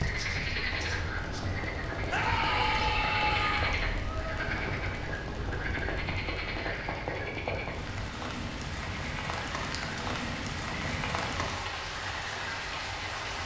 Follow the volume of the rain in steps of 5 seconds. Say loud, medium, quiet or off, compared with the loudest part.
medium, loud, loud.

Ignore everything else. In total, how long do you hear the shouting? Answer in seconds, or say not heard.
2 s.